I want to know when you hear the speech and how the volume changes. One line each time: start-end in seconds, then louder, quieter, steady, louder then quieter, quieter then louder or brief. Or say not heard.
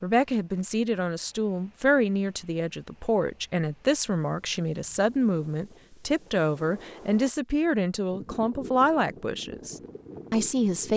0.0-10.9 steady.